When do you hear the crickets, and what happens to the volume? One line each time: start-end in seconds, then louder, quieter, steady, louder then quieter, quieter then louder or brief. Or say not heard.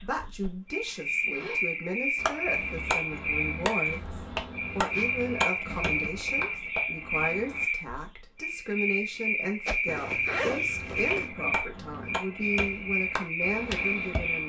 0.0-14.4 steady.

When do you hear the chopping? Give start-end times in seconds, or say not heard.
2.1-7.7, 10.7-14.4.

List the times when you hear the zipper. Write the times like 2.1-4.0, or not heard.
0.8-1.6, 5.7-6.8, 9.8-11.3.